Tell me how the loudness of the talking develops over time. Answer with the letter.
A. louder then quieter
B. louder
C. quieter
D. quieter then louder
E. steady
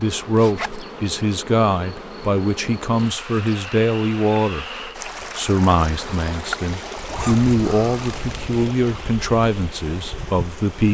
E.